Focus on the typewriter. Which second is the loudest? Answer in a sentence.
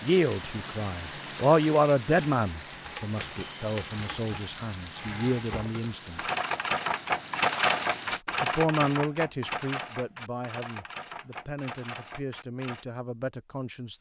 The loudest moment of the typewriter is at 8 seconds.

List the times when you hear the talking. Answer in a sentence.
You can hear the talking from 0.0 to 6.2 s and from 8.4 to 13.9 s.